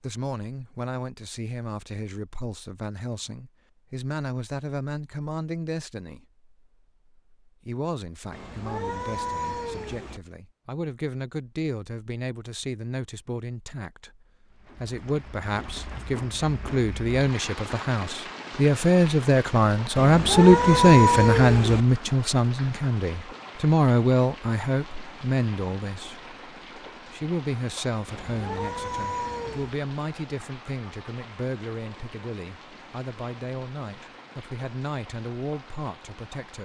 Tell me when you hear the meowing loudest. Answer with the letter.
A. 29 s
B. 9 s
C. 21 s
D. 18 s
C.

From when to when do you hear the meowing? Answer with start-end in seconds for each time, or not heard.
8.3-10.2, 19.9-21.9, 28.1-29.8.